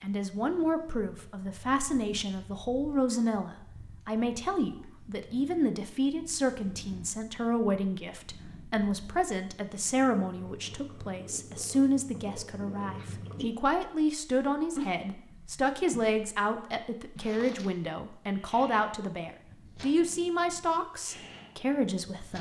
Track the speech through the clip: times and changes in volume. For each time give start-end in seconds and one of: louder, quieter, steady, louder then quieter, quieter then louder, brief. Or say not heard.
0.0-22.3 steady.